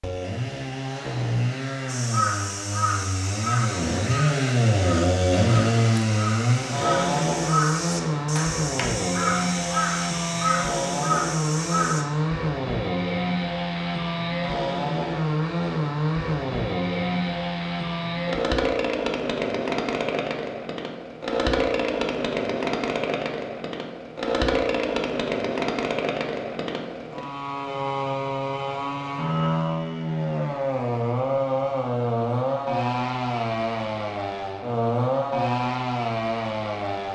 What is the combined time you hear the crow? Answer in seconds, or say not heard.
10 s.